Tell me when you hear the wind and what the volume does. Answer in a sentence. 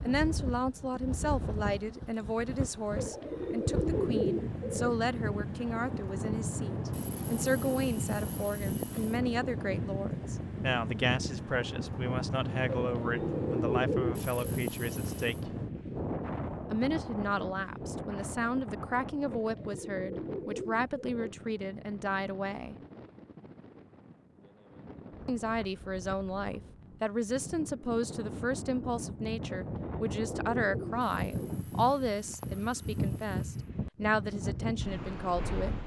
The wind can be heard from 0.0 to 35.8 s, getting quieter then louder.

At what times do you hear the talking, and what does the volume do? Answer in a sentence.
The talking can be heard from 0.1 to 15.5 s, at a steady volume; from 16.7 to 22.8 s, at a steady volume; and from 25.2 to 35.8 s, at a steady volume.